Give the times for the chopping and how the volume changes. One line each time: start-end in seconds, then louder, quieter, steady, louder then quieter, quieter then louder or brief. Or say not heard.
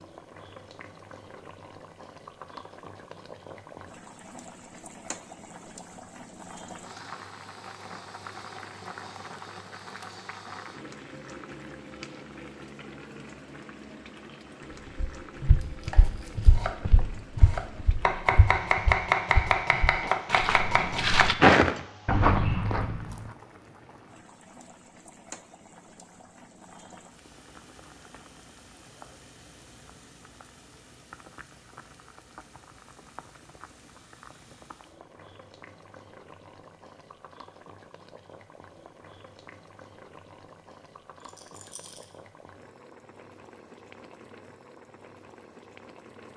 15.9-21.3 louder.